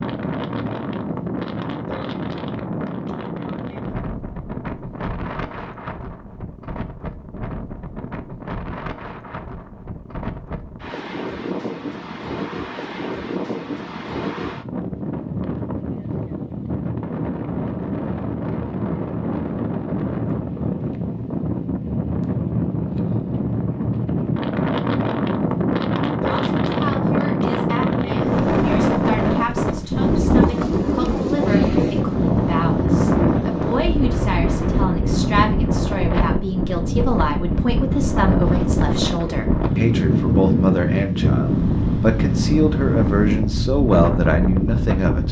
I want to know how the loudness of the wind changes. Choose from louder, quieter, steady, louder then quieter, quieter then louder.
louder.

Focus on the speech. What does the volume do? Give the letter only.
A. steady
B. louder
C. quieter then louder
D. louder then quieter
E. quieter
B.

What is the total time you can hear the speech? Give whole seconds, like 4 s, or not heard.
19 s.